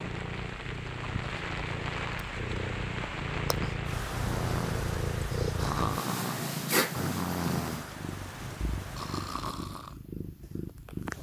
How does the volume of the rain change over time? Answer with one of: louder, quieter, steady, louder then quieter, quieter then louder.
quieter.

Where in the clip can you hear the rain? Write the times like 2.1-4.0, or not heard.
0.0-9.5.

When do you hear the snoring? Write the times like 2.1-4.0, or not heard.
4.1-9.9.